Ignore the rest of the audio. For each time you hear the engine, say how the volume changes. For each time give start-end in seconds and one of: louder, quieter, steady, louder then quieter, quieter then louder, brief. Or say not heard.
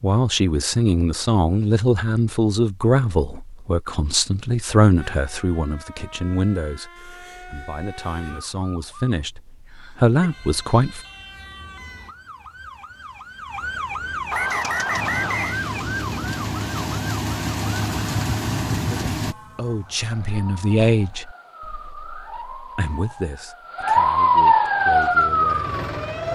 14.5-19.4 louder
24.8-26.3 brief.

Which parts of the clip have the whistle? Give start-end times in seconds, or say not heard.
14.3-15.6.